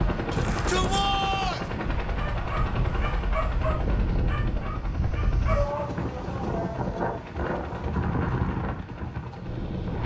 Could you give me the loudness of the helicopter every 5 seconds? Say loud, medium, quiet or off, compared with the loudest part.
loud, medium.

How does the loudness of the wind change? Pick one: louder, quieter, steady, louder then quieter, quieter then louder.
louder.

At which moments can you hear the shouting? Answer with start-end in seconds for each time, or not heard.
0.3-1.7, 5.5-7.3.